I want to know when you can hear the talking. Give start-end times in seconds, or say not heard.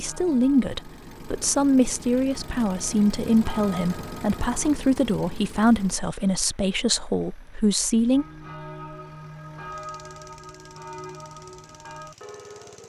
0.0-8.2.